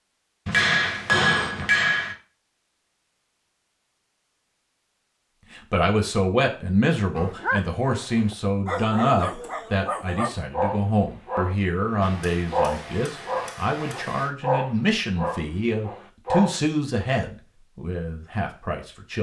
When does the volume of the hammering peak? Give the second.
1 s.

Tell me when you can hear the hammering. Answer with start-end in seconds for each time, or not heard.
0.5-2.1, 12.0-14.3.